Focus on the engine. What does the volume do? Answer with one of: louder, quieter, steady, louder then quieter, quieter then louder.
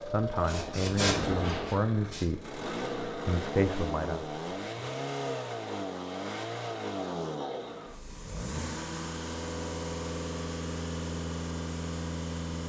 steady.